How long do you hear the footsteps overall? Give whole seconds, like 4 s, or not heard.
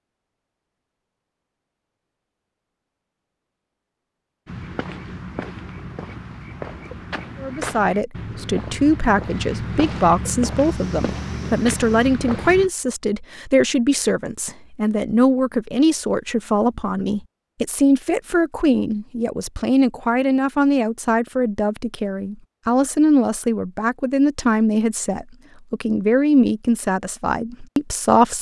8 s.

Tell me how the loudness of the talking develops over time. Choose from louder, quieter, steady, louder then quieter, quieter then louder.
steady.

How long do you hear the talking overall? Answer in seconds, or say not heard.
21 s.